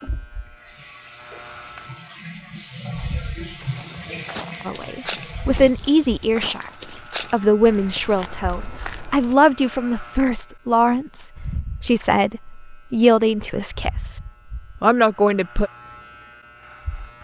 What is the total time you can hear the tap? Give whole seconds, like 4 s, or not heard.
6 s.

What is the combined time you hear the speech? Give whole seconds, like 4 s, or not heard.
10 s.